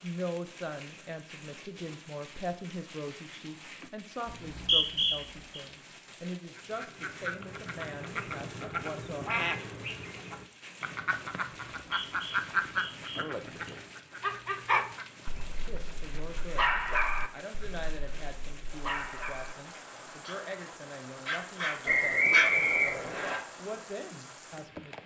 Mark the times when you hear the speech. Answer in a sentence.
The speech can be heard from 0.0 to 9.4 s, from 15.7 to 16.6 s and from 17.3 to 25.0 s.